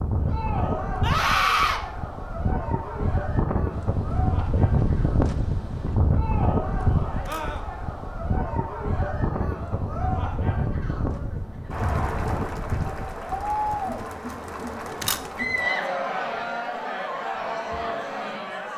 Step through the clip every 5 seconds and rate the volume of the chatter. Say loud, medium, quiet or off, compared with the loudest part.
medium, medium, loud, loud.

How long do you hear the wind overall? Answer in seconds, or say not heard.
14 s.